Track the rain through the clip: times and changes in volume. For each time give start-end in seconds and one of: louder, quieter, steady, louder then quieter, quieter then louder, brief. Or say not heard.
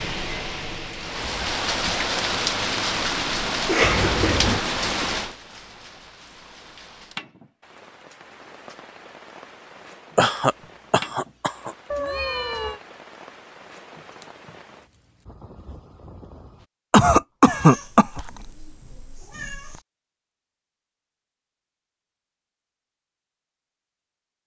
0.0-16.7 quieter.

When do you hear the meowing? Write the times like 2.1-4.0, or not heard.
3.8-4.6, 11.9-12.8, 17.4-19.8.